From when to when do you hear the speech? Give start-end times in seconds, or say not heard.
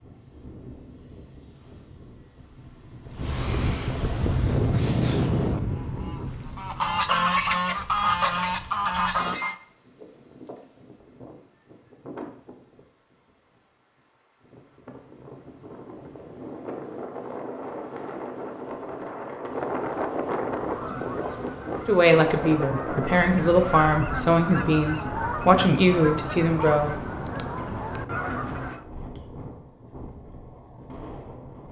21.9-27.0.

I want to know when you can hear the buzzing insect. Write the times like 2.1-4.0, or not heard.
not heard.